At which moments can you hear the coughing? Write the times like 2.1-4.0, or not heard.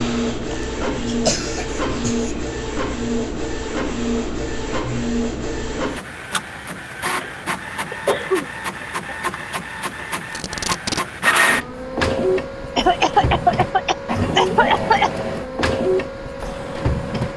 0.5-2.3, 7.2-9.2, 12.8-15.1.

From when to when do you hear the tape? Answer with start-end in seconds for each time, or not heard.
10.3-11.1.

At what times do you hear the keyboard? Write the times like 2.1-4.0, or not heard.
not heard.